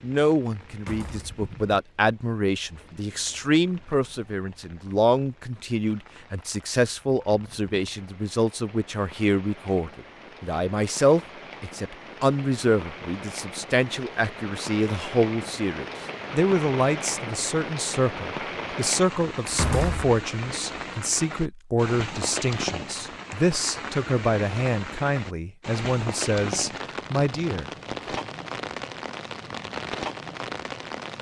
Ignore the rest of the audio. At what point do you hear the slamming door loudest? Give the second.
20 s.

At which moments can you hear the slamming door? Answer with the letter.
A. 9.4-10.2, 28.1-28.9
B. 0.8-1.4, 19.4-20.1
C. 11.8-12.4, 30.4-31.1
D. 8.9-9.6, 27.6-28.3
B.